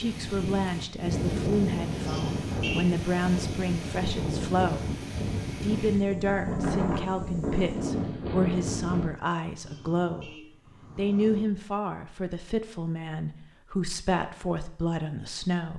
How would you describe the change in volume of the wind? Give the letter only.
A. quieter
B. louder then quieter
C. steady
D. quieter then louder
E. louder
C.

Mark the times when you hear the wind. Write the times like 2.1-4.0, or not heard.
0.0-9.1.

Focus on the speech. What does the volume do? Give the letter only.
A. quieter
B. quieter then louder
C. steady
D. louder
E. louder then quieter
C.